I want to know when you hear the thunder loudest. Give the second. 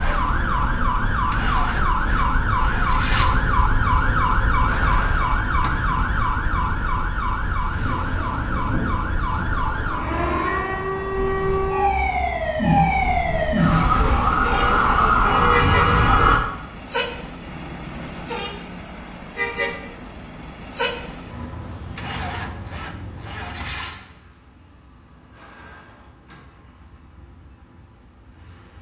9 s.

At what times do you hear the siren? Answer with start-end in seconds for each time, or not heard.
0.0-16.4.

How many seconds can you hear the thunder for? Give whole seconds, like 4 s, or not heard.
2 s.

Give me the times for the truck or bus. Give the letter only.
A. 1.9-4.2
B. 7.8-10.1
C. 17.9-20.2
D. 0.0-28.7
D.